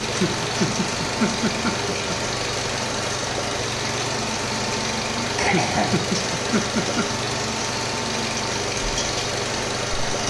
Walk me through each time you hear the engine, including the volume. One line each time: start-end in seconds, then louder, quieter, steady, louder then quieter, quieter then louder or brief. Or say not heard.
0.0-10.2 steady.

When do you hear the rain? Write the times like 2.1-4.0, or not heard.
0.0-10.2.